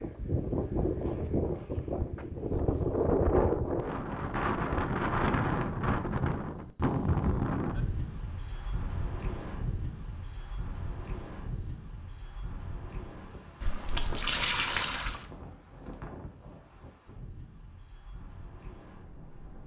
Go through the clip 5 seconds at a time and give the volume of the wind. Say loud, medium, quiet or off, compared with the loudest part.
loud, loud, quiet, quiet.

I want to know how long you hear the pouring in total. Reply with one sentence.
The pouring can be heard for 2 seconds in total.